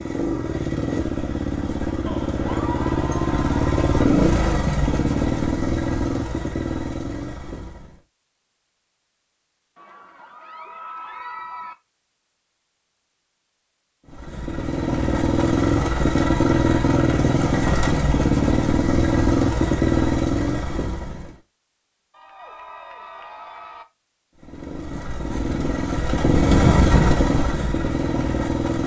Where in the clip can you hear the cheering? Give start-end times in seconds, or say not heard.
2.0-4.0, 9.8-11.8, 22.1-23.9.